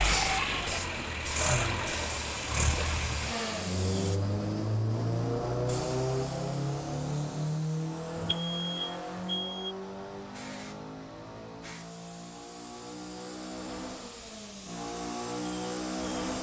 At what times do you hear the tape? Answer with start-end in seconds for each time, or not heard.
not heard.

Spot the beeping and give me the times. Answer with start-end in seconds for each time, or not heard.
8.2-9.8.